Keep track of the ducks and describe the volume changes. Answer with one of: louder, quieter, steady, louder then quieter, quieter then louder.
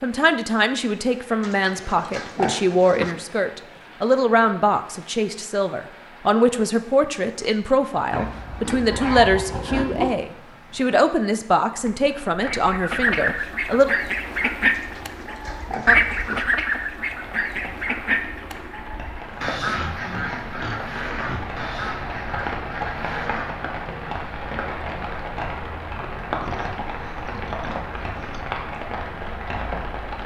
quieter.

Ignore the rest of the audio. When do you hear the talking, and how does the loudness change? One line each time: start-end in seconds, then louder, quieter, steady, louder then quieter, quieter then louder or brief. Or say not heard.
0.0-13.9 steady.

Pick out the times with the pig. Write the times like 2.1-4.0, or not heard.
1.4-3.1, 8.1-10.2, 14.7-16.4, 19.2-21.6, 26.4-28.4.